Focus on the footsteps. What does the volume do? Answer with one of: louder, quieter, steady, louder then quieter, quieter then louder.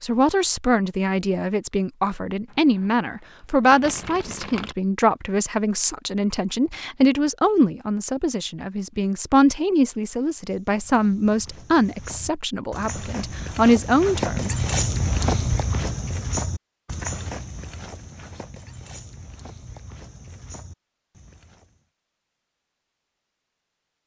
louder then quieter.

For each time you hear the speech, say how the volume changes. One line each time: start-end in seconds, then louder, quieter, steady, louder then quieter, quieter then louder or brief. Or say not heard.
0.0-14.6 steady.